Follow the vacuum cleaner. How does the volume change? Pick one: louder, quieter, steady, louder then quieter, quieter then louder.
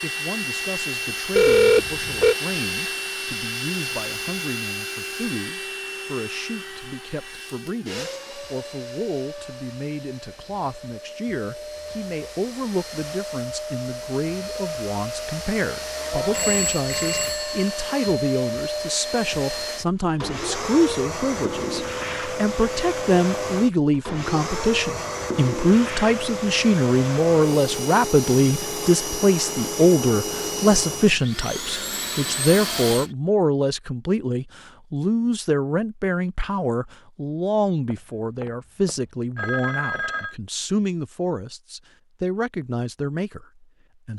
quieter then louder.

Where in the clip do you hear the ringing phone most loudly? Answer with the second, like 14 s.
2 s.